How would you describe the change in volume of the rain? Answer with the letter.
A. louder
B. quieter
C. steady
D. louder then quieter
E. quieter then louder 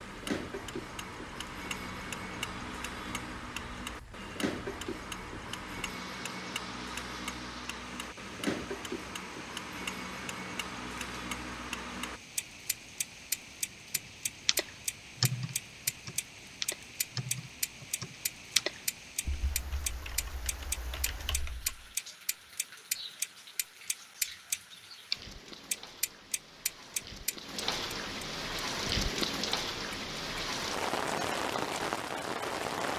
A.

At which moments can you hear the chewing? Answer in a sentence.
You can't hear the chewing here.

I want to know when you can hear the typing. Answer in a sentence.
You can hear the typing from 13.9 to 21.9 s.